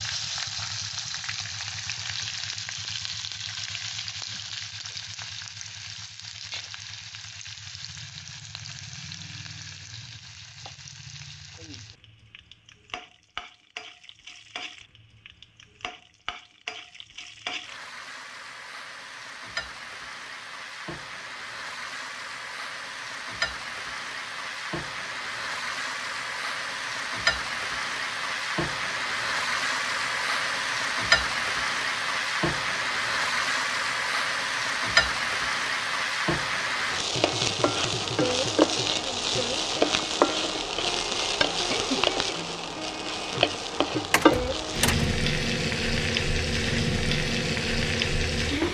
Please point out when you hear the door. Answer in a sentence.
You can hear the door from 44.1 to 45.1 s.